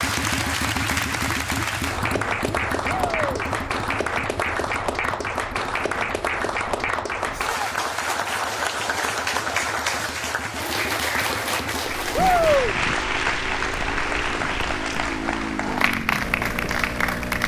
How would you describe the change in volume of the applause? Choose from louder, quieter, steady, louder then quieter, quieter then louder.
steady.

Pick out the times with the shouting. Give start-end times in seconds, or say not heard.
2.9-3.4, 7.3-7.8, 12.2-12.8.